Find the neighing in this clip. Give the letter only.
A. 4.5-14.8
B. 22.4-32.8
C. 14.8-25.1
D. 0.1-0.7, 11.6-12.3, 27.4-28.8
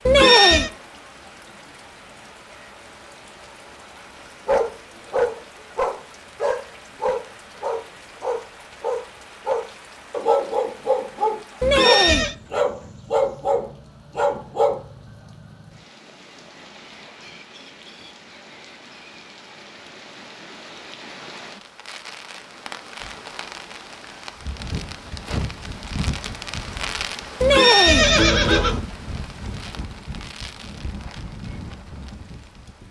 D.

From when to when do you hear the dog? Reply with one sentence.
You can hear the dog from 4.5 to 14.8 s.